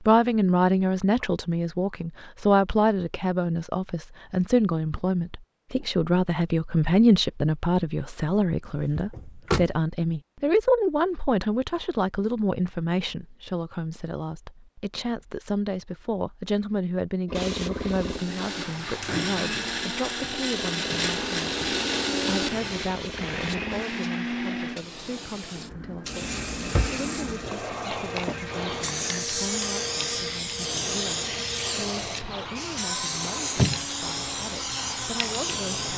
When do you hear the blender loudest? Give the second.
22 s.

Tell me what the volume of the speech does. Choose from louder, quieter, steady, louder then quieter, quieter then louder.
quieter.